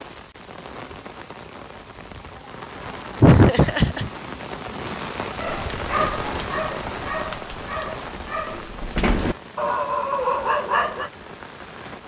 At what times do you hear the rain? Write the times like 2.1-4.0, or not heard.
0.0-12.0.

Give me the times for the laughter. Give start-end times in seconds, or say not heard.
3.2-4.1.